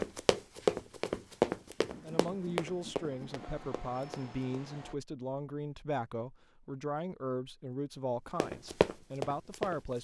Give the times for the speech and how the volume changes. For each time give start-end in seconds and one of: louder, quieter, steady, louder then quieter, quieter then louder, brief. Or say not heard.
2.0-9.9 steady.